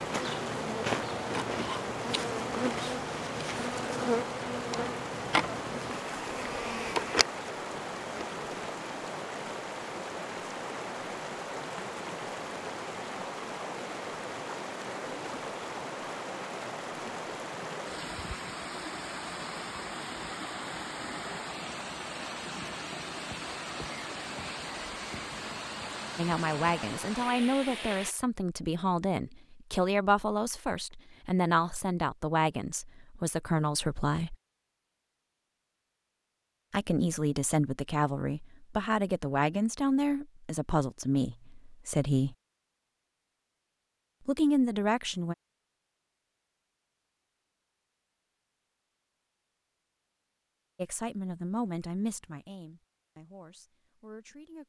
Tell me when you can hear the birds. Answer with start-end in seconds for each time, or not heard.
not heard.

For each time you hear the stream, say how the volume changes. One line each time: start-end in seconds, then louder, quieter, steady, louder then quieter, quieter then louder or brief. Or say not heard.
0.0-28.1 steady.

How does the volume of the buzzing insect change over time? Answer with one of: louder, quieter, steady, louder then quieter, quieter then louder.
steady.